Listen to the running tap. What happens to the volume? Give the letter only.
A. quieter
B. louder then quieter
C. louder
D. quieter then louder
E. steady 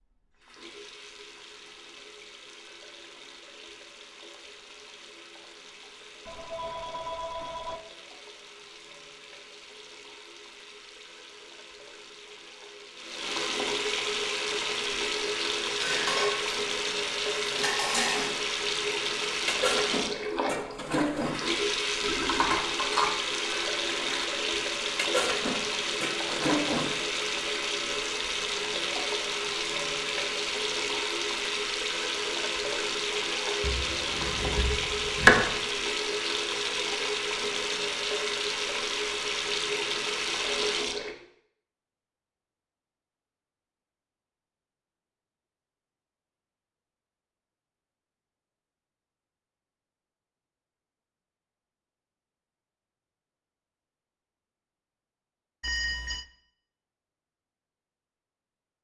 C.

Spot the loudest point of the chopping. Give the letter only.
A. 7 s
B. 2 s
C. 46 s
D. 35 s
D.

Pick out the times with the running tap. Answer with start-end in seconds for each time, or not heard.
0.2-41.1.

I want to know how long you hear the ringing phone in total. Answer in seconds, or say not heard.
3 s.